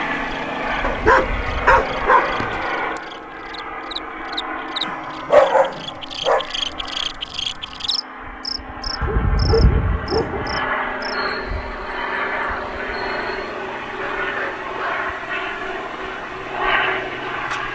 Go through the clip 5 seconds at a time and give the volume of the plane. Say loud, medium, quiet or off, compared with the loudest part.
loud, medium, loud, loud.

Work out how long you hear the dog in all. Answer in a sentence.
You can hear the dog for 6 seconds altogether.